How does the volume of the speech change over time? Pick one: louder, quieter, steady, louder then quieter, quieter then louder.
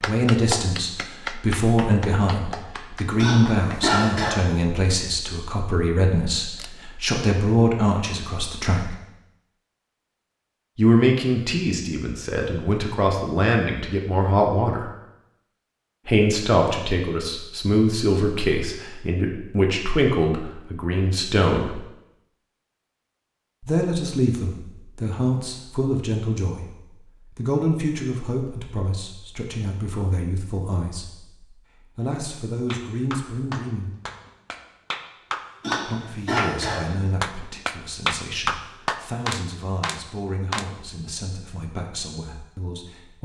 quieter.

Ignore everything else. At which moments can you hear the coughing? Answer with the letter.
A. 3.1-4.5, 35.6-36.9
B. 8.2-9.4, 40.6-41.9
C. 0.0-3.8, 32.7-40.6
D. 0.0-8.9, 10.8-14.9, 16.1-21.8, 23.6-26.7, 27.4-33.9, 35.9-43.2
A.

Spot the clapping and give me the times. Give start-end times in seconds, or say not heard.
0.0-3.8, 32.7-40.6.